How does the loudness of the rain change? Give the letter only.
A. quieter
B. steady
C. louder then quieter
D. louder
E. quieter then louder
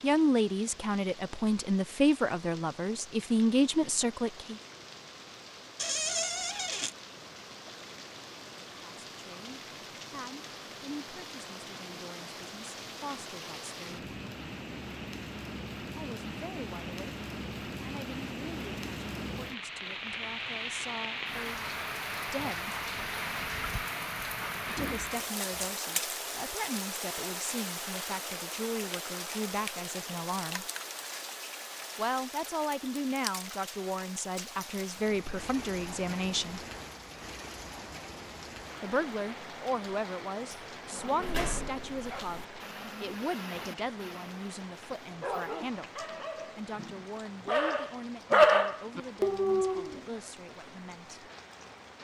C.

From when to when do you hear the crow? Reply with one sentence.
You can't hear the crow here.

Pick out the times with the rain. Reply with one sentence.
You can hear the rain from 0.0 to 51.9 s.